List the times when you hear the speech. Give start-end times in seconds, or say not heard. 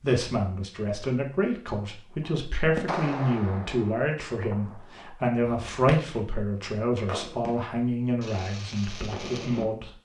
0.0-9.9.